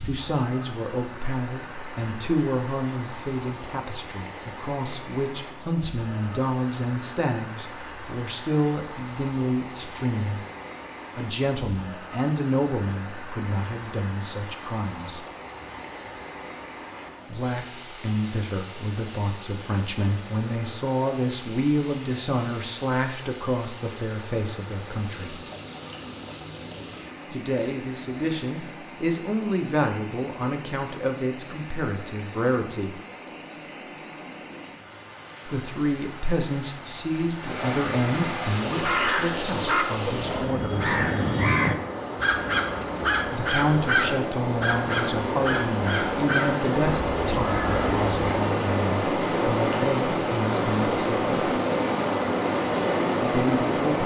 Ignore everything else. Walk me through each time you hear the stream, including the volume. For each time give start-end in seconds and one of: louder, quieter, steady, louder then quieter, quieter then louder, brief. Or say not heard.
0.0-54.0 louder.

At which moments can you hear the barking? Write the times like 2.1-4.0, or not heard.
not heard.